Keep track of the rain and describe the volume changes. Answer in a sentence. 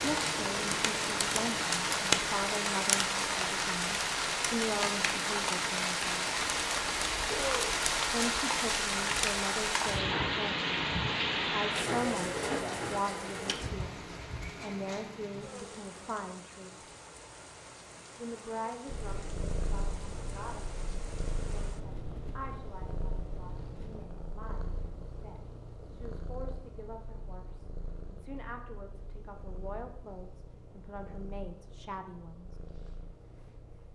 The volume of the rain goes down.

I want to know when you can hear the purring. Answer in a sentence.
The purring can be heard from 18.9 to 33.9 s.